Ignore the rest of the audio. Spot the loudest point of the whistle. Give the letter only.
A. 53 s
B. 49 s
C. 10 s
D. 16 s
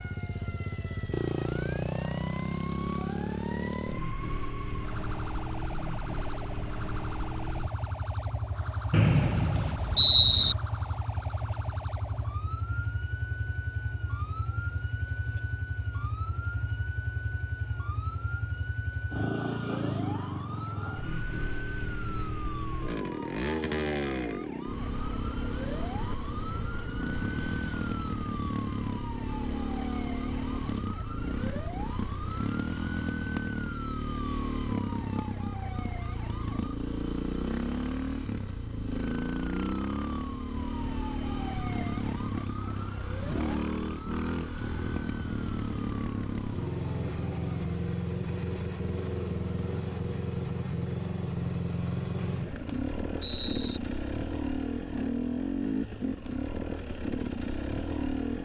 C.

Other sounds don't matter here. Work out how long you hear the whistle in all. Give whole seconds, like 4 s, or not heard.
3 s.